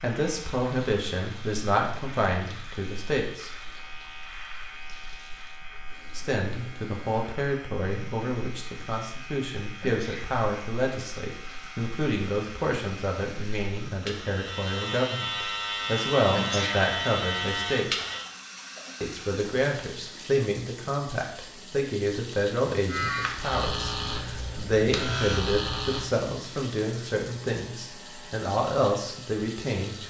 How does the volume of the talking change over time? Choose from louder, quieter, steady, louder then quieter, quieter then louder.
steady.